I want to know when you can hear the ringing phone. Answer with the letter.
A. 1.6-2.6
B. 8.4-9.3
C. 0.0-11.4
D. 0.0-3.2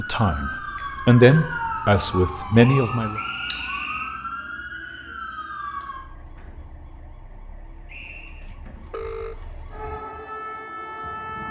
B.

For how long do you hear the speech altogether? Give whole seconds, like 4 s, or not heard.
3 s.